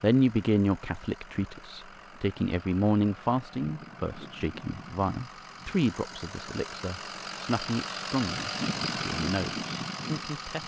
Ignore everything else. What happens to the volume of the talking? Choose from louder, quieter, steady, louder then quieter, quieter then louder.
quieter.